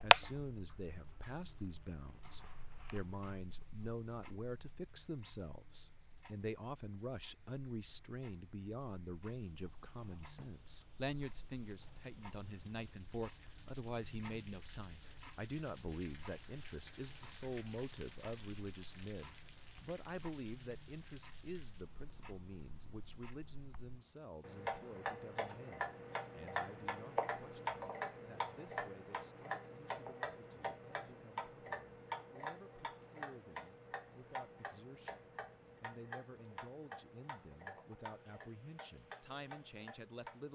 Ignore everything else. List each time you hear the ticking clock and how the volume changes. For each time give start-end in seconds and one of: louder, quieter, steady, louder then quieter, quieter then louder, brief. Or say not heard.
0.0-40.5 louder then quieter.